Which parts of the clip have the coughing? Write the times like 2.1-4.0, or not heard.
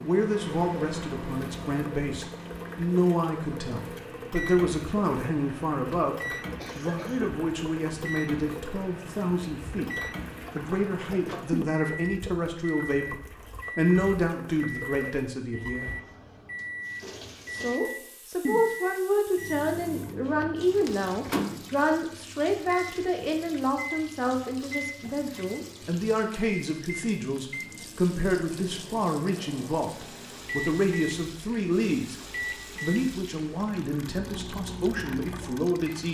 6.5-7.3.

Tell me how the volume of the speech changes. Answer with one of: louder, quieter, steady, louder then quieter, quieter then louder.
steady.